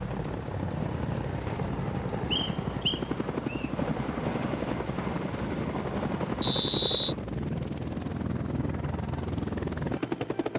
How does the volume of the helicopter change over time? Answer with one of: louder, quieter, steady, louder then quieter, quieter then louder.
steady.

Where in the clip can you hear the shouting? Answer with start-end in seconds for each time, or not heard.
not heard.